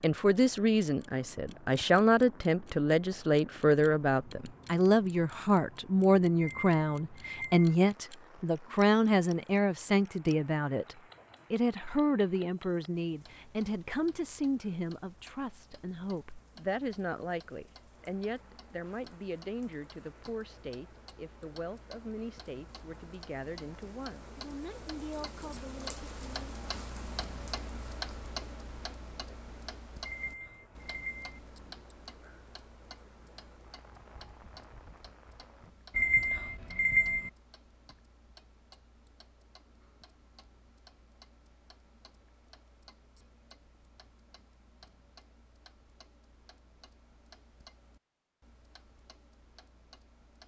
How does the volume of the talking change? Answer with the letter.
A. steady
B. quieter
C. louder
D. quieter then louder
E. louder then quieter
B.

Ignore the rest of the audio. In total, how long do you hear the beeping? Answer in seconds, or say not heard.
4 s.